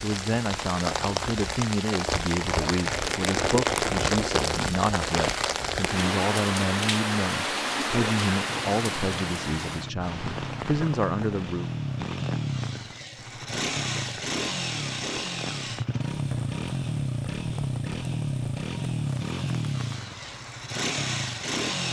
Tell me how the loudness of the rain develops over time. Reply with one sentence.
The volume of the rain goes down.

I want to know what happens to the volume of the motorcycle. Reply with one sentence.
The volume of the motorcycle goes up.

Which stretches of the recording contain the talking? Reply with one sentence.
You can hear the talking from 0.0 to 11.7 s.